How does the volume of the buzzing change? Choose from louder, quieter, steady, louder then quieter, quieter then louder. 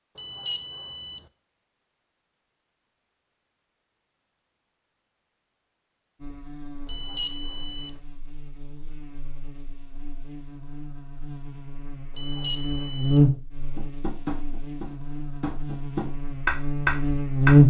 louder then quieter.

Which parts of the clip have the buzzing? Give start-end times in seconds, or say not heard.
6.2-17.6.